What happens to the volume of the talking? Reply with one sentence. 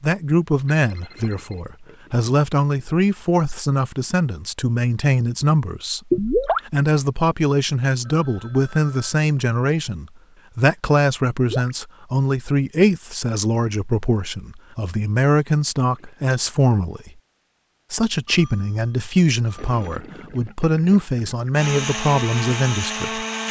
The loudness of the talking stays about the same.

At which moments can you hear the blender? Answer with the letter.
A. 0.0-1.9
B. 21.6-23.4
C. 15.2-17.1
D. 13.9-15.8
B.